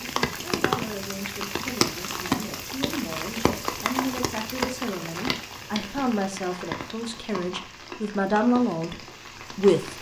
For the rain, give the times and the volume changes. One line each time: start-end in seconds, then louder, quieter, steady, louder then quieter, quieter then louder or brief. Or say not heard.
0.0-9.9 quieter.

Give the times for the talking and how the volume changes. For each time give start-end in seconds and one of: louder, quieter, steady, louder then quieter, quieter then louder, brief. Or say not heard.
0.0-9.9 louder.